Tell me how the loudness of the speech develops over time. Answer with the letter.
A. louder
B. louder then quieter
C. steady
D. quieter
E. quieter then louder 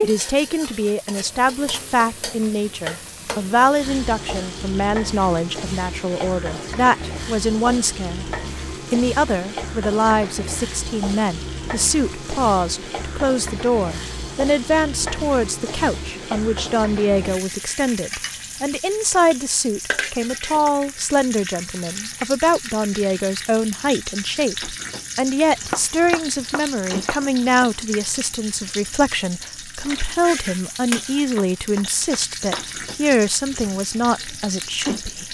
C.